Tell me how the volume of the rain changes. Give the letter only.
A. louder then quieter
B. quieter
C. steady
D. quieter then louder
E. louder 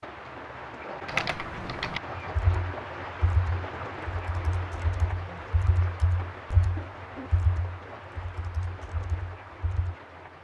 B.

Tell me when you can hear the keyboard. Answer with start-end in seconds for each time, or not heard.
1.1-9.9.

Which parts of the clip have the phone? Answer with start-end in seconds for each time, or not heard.
not heard.